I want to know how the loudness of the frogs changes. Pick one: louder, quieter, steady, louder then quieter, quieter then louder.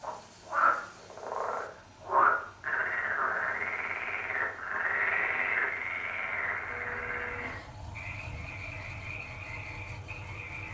quieter.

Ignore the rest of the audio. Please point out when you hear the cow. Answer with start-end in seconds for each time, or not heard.
6.7-8.7.